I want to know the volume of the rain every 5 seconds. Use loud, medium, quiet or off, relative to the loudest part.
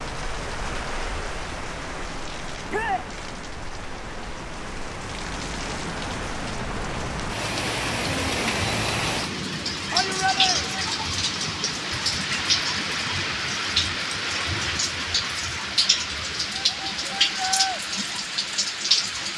medium, loud, loud, loud.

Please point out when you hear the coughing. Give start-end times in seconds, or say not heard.
not heard.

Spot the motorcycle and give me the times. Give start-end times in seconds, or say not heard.
not heard.